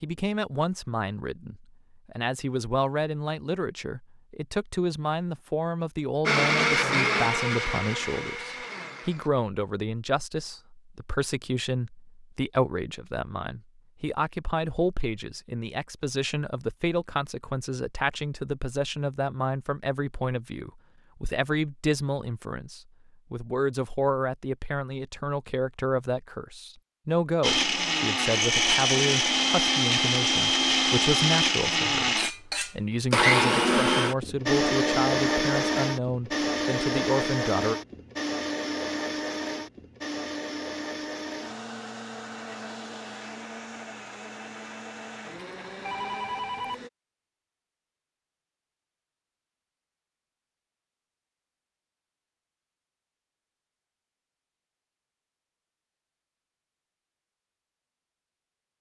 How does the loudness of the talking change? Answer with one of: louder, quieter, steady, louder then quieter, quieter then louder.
steady.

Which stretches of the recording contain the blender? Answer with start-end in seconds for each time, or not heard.
6.2-9.3, 27.4-46.9.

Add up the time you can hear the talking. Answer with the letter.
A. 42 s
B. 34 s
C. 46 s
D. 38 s
D.